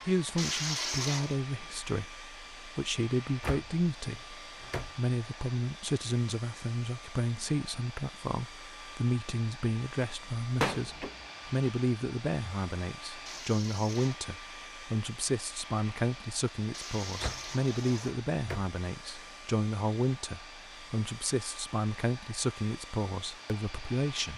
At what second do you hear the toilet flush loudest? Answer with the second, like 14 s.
1 s.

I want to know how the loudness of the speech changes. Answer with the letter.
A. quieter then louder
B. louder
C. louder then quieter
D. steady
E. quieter
D.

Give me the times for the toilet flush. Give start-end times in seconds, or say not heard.
0.3-1.4, 13.2-14.2, 16.7-18.1.